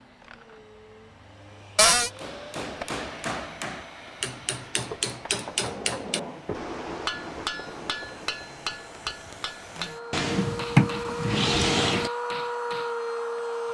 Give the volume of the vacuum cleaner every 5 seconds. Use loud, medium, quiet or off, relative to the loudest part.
quiet, quiet, loud.